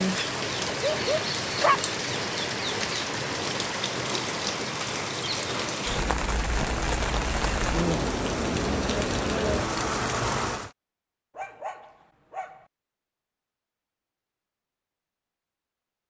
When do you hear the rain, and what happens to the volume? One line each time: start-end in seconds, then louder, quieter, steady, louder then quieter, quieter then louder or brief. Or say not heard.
0.0-10.7 steady.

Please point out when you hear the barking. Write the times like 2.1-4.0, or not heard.
0.7-1.8, 11.3-12.7.